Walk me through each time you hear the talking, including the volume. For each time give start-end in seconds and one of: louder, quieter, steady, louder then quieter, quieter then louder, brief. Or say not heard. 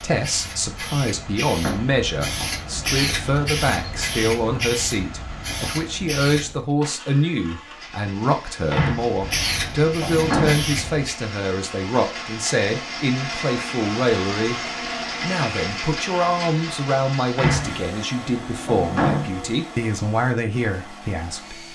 0.0-14.6 steady
15.2-21.6 steady.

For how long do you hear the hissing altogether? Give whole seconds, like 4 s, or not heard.
9 s.